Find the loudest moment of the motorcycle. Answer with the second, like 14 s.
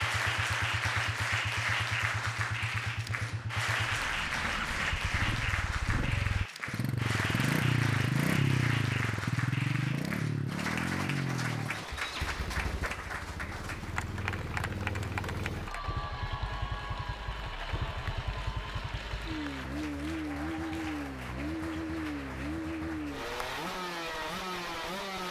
8 s.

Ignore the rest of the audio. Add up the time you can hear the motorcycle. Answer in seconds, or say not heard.
25 s.